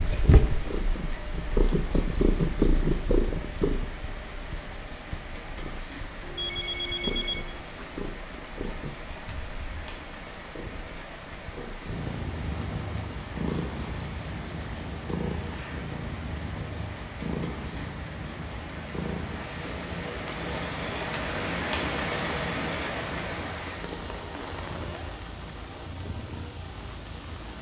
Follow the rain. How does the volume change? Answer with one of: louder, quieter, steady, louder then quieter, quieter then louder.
louder.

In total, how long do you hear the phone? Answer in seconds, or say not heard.
2 s.